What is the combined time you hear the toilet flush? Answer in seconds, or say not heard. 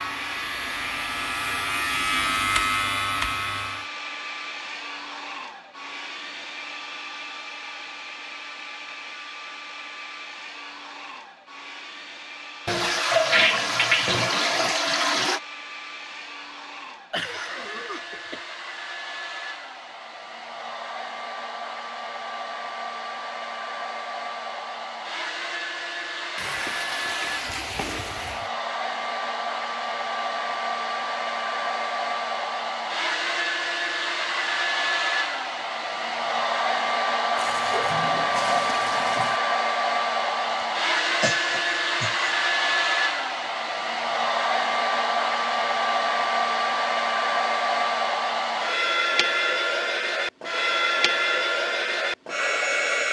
7 s.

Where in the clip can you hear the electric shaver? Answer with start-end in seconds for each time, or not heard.
0.0-3.9.